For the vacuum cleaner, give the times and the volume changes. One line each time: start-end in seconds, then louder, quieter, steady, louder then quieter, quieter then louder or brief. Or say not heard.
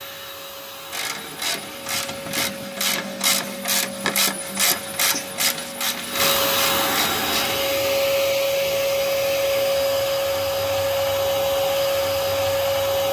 0.0-13.0 louder.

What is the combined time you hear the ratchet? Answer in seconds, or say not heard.
7 s.